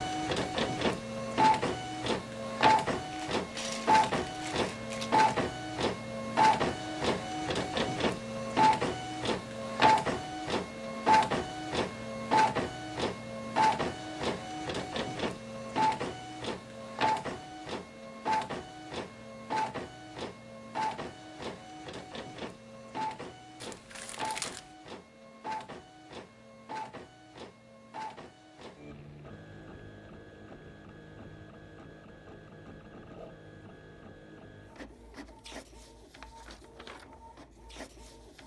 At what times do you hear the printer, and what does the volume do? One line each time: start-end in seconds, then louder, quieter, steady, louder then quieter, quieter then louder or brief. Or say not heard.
0.0-38.4 quieter.